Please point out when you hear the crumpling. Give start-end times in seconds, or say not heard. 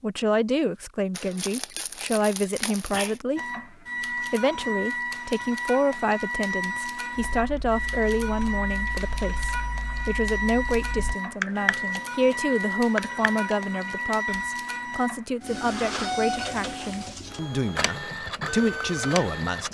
1.1-3.2.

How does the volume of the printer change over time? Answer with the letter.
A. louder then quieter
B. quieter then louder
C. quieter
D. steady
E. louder
D.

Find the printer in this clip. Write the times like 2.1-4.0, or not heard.
3.4-19.7.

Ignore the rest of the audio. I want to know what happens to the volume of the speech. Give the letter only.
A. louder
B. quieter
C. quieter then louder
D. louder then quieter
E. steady
E.